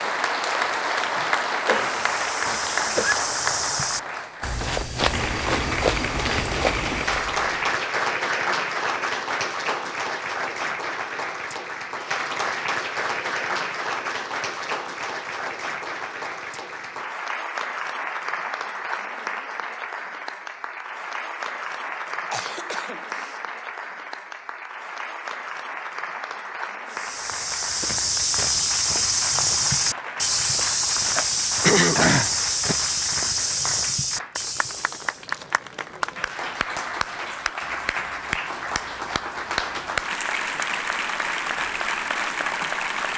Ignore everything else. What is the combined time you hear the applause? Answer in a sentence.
The applause can be heard for 43 seconds in total.